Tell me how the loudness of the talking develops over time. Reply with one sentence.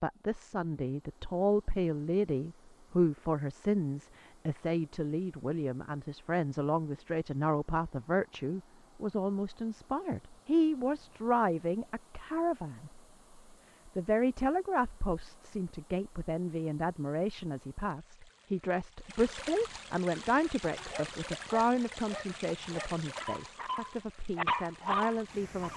The volume of the talking stays about the same.